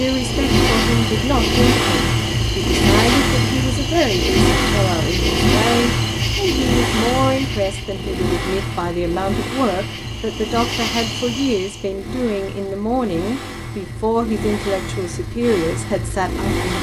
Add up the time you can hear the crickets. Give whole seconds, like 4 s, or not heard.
12 s.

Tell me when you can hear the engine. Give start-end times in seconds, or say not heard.
0.0-16.7.